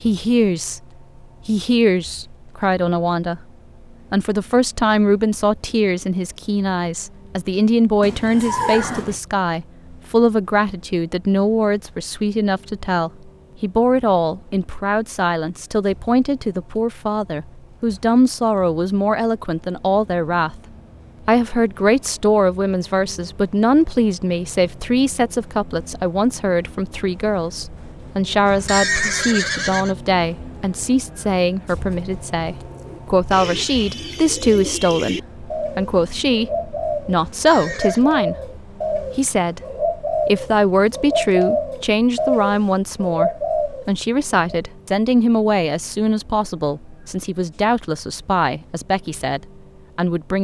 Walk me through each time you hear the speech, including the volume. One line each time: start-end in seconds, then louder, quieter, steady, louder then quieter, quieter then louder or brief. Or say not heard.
0.0-0.8 brief
1.4-3.4 brief
4.1-20.6 steady
21.2-50.3 steady.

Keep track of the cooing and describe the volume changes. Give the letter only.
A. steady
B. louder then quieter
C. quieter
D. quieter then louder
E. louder
E.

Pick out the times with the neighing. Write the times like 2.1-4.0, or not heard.
8.0-9.2, 28.4-29.9, 37.4-38.0.